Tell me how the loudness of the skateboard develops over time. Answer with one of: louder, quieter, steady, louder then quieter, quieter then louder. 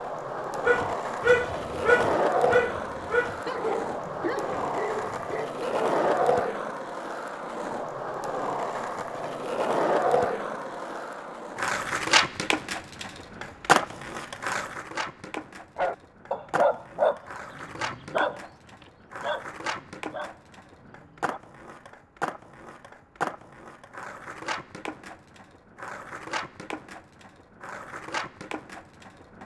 quieter.